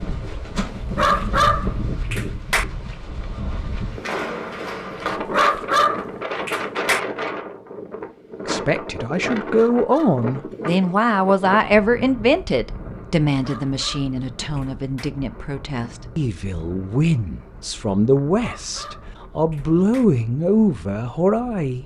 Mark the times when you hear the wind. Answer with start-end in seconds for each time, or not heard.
0.0-21.8.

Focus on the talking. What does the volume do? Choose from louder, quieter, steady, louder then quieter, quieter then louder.
quieter then louder.